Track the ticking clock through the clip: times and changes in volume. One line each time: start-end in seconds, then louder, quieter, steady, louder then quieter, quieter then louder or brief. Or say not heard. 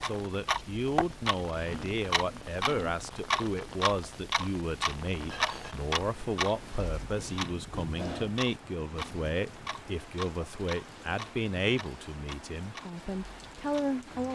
0.0-14.2 quieter.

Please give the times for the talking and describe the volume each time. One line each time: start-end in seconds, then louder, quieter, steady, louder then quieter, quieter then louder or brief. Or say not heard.
0.0-14.2 steady.